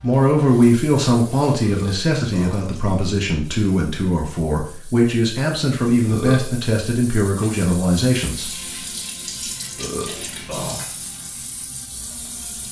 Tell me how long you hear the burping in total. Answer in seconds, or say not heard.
3 s.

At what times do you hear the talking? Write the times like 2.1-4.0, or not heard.
0.0-8.5.